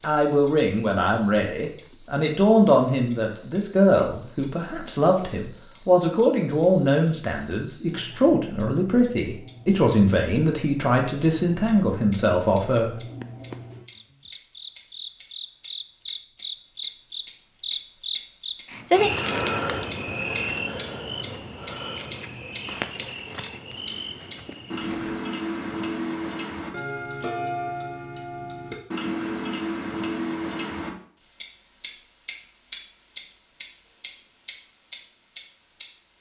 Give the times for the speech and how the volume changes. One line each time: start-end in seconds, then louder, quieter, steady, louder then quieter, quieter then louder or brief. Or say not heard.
0.0-12.9 steady.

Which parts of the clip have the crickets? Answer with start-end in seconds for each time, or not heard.
0.1-25.2.